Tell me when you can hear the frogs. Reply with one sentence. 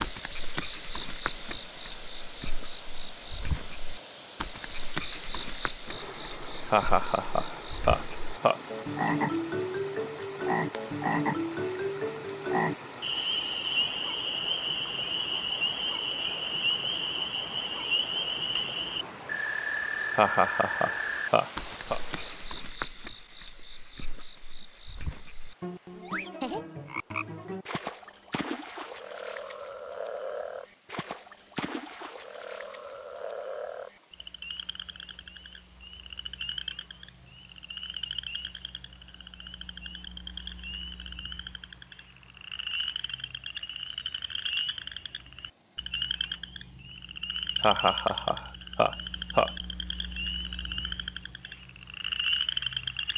The frogs can be heard from 0.0 to 53.1 s.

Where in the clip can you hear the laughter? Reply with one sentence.
The laughter can be heard from 6.7 to 8.6 s, from 20.1 to 22.0 s and from 47.6 to 49.5 s.